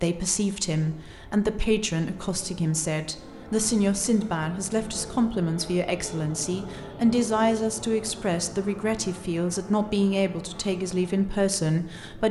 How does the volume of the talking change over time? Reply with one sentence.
The volume of the talking stays about the same.